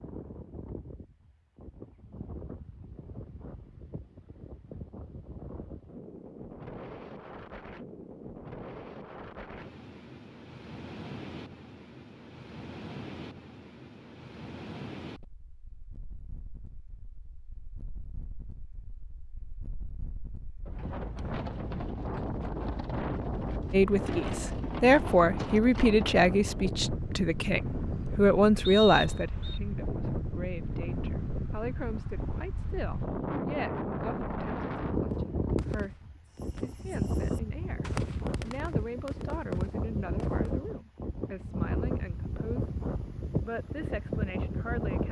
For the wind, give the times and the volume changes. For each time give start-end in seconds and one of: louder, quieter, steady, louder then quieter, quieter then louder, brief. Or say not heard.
0.0-45.0 louder.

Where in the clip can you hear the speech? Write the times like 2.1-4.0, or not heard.
23.7-36.0, 36.5-42.7, 43.4-45.0.